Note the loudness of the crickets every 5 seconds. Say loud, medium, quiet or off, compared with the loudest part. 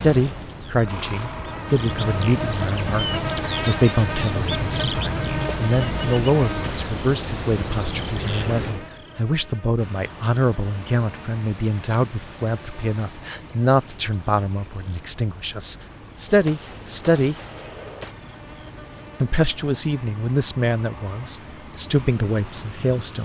loud, loud, quiet, quiet, quiet.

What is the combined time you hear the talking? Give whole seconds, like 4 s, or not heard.
21 s.